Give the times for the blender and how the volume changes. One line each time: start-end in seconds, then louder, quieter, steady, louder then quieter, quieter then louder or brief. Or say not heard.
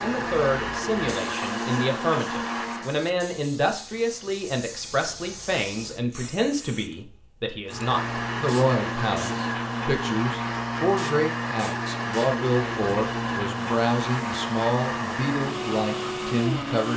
0.0-3.0 brief
7.7-16.9 steady.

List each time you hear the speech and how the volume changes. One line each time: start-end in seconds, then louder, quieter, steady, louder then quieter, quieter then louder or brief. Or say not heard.
0.0-16.9 steady.